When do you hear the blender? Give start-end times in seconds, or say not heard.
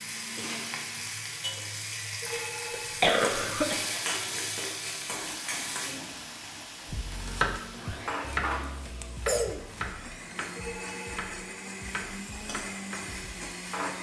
0.0-1.8, 5.0-13.9.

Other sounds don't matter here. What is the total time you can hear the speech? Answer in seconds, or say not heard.
not heard.